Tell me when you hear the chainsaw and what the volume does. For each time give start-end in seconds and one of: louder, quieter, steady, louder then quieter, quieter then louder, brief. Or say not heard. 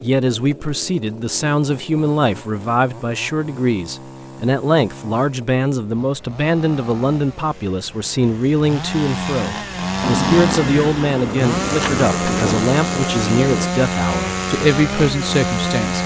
0.0-16.0 louder.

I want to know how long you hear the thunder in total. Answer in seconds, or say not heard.
4 s.